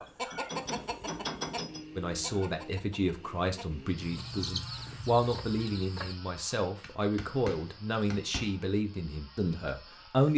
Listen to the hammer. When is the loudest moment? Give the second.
1 s.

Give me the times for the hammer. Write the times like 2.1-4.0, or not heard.
0.1-1.8, 6.8-8.7.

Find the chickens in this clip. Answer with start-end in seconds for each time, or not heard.
0.0-6.2.